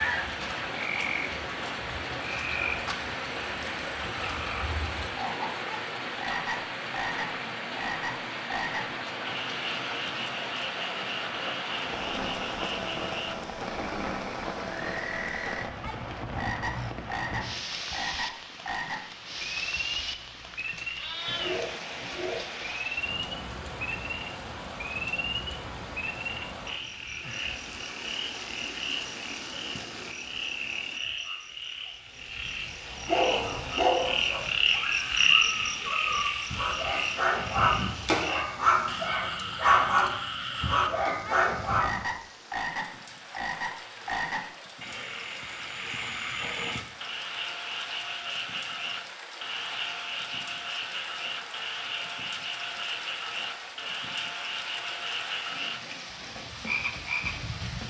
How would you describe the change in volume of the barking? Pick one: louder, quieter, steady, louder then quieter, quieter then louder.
quieter then louder.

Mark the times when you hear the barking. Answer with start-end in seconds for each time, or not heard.
32.9-42.0.